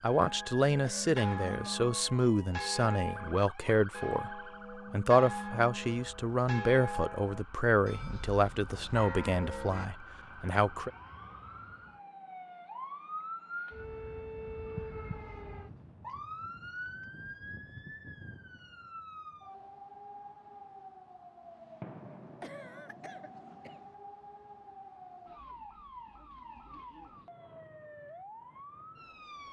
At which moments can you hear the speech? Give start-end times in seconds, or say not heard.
0.0-10.9.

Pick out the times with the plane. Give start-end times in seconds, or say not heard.
not heard.